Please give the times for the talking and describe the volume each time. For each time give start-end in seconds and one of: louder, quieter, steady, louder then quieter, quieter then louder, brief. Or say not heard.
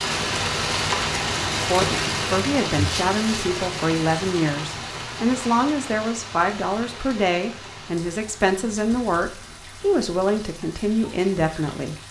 1.6-11.9 steady.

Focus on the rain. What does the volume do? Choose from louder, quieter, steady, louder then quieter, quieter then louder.
quieter.